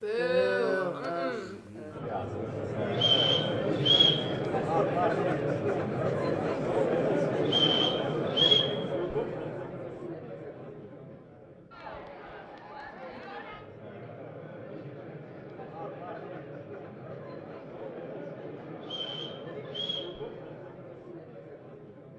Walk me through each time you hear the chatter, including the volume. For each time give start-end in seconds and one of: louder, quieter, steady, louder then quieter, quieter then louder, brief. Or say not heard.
0.0-22.1 quieter.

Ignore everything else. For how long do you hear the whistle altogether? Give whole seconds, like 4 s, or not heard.
4 s.